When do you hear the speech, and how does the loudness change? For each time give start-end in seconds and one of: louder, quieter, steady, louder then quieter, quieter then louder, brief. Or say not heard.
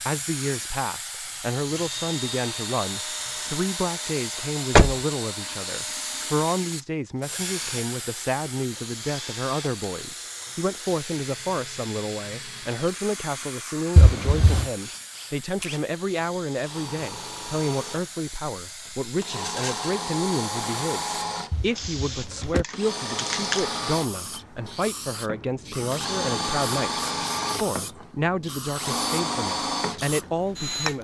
0.1-31.0 steady.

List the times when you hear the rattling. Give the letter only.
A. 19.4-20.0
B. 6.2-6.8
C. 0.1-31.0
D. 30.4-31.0
A.